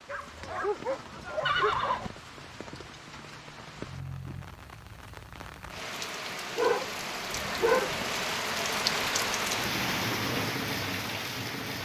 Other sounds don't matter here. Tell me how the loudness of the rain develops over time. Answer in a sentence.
The volume of the rain goes up.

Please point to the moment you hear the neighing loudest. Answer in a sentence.
The volume of the neighing peaks at 2 seconds.